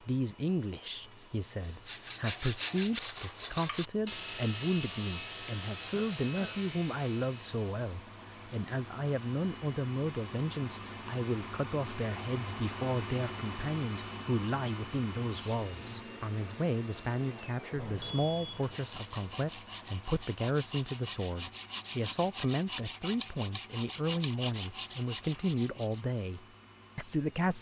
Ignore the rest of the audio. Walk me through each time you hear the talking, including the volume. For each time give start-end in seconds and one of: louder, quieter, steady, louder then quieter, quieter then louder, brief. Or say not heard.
0.1-27.5 steady.